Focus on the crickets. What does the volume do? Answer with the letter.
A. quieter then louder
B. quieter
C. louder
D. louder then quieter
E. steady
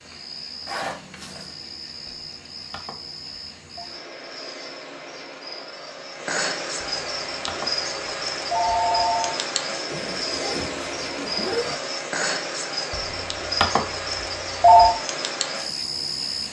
C.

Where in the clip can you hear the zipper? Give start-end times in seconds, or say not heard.
0.7-1.5, 9.8-11.8.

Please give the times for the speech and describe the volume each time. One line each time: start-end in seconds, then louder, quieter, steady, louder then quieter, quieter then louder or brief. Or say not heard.
not heard.